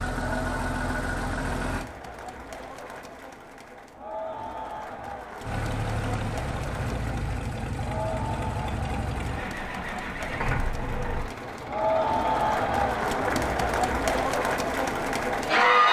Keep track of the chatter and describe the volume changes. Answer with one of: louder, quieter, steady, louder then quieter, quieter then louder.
louder.